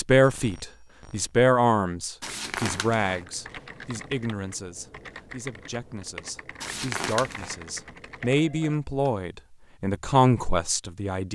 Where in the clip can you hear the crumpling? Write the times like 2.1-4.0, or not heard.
2.2-3.2, 6.6-7.5.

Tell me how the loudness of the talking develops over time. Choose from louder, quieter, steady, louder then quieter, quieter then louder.
quieter then louder.